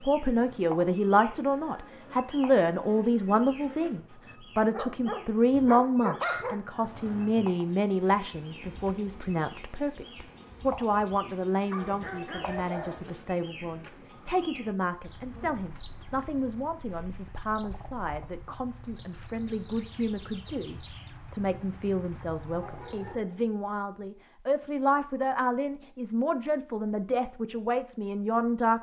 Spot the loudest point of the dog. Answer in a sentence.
The volume of the dog peaks at 6 seconds.